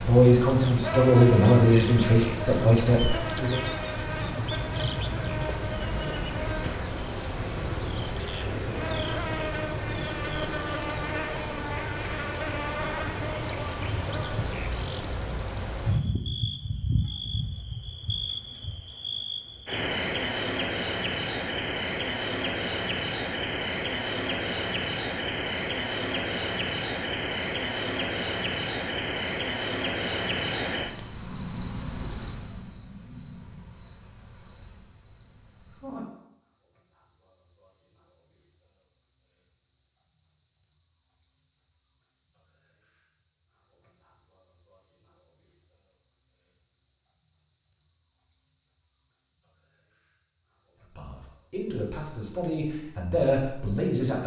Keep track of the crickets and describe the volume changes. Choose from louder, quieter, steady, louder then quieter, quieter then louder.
quieter.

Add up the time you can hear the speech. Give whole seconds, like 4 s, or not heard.
7 s.